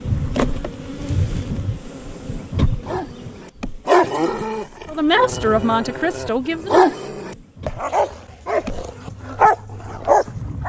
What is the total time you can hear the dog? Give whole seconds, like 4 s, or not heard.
9 s.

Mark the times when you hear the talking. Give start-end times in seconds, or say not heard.
4.8-6.8.